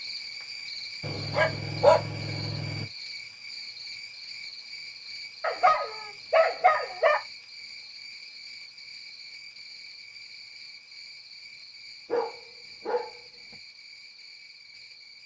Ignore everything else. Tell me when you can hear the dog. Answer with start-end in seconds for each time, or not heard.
1.0-2.9, 5.4-7.2, 12.1-13.6.